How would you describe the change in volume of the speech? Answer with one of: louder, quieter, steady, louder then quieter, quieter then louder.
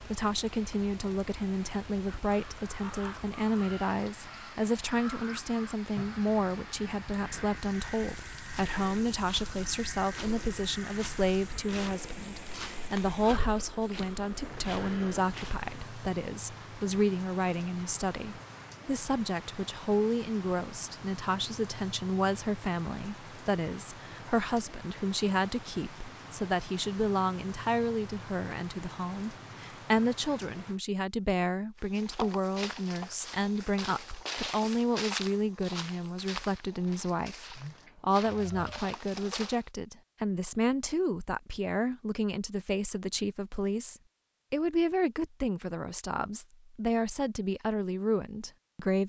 steady.